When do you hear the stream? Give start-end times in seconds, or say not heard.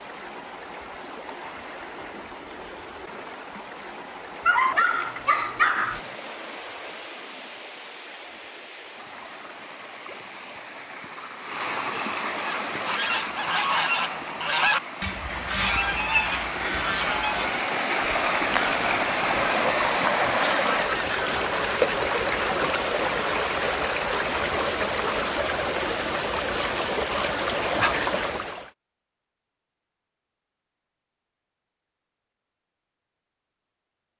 0.0-28.7.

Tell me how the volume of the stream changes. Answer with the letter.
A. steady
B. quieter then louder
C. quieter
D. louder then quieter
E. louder
E.